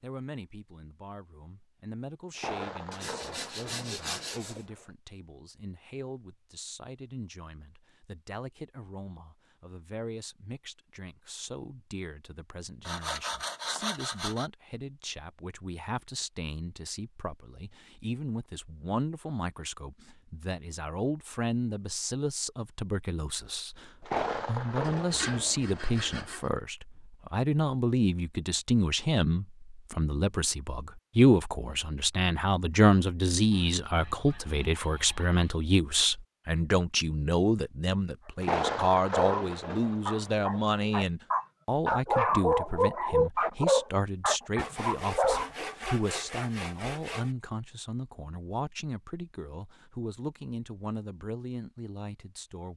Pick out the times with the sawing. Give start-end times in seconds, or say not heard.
2.9-4.7, 12.8-14.5, 24.8-26.4, 33.5-35.6, 44.5-47.4.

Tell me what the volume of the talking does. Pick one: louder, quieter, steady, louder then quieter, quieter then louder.
louder then quieter.